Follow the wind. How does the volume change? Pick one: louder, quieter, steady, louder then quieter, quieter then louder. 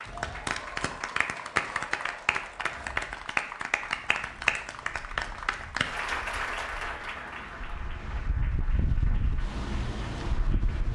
quieter then louder.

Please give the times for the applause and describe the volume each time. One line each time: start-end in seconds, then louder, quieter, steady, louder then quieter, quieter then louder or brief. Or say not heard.
0.0-10.9 quieter.